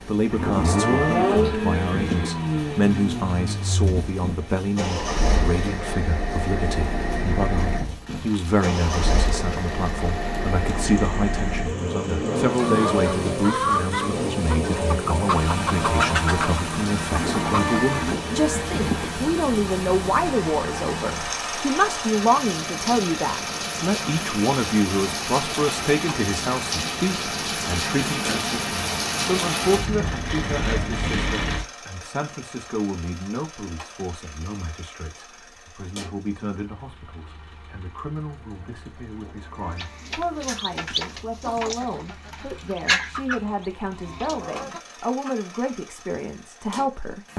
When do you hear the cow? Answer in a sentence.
You can hear the cow from 0.3 to 2.3 s, from 17.1 to 19.1 s and from 39.0 to 41.1 s.